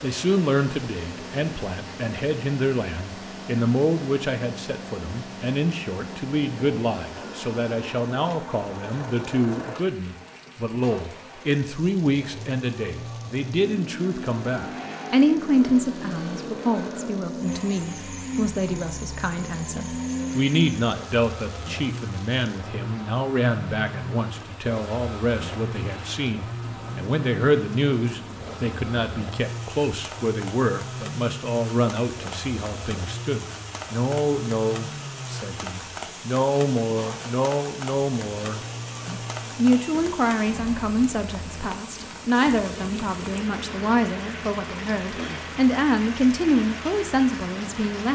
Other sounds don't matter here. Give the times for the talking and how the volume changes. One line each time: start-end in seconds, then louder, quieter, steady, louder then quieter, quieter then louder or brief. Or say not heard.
0.0-48.1 steady.